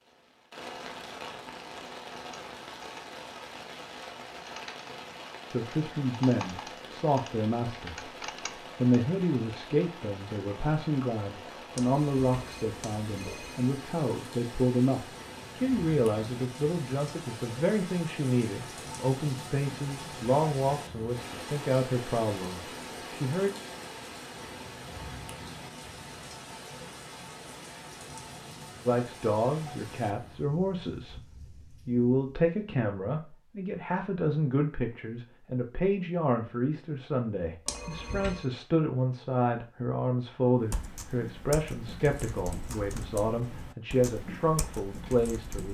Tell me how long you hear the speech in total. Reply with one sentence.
You can hear the speech for 35 seconds altogether.